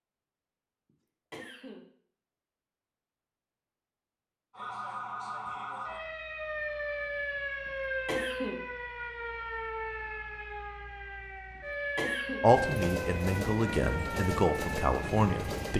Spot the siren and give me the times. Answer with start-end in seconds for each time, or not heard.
4.5-15.7.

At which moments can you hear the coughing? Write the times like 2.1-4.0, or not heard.
1.3-1.9, 7.7-8.6, 11.6-12.4.